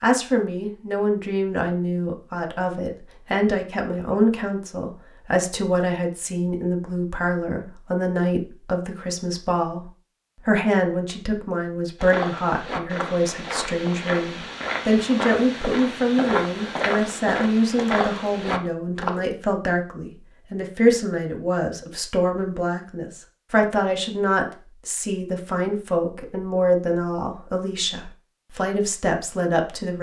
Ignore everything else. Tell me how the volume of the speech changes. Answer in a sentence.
The loudness of the speech stays about the same.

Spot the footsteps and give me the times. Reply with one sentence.
You can hear the footsteps from 12.0 to 19.1 s.